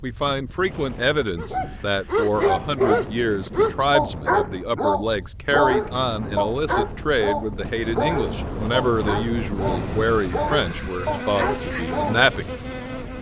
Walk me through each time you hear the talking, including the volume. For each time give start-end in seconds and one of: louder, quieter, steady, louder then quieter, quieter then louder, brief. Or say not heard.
0.0-12.4 steady.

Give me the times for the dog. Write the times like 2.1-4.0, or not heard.
1.4-12.2.